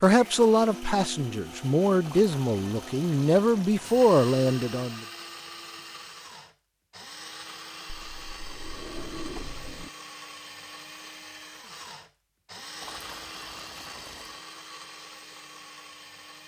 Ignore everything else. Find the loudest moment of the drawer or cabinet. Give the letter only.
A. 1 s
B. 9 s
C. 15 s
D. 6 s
B.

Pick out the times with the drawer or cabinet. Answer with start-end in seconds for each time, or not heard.
7.8-9.9.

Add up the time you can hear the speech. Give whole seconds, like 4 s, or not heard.
5 s.